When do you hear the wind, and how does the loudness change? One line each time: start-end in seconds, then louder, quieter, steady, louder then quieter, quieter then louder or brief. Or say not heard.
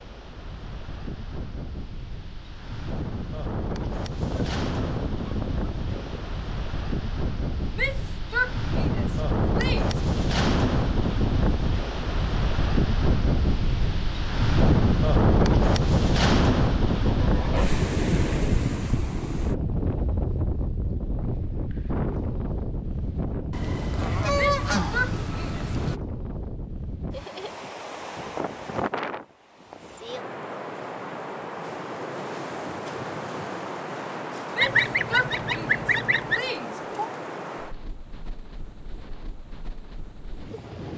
0.0-40.9 louder then quieter.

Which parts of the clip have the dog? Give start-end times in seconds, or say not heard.
not heard.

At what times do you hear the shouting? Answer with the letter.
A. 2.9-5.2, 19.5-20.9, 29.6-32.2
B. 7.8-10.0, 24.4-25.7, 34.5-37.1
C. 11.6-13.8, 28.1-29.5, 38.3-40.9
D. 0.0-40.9
B.